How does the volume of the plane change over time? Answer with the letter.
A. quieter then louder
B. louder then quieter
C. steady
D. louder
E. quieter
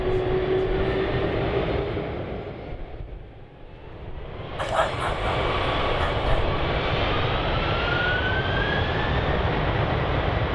A.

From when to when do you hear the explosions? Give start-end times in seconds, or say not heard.
not heard.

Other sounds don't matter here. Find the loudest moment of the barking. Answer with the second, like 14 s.
5 s.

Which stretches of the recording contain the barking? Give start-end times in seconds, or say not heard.
4.5-6.5.